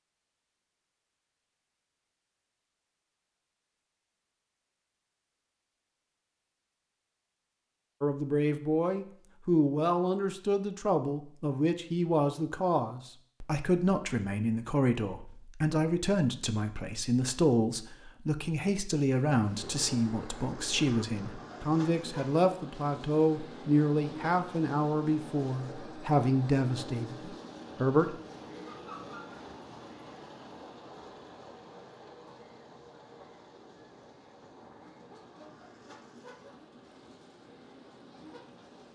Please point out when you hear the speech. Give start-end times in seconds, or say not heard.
8.0-28.1.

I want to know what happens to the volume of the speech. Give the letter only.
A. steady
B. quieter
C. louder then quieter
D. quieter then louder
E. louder
A.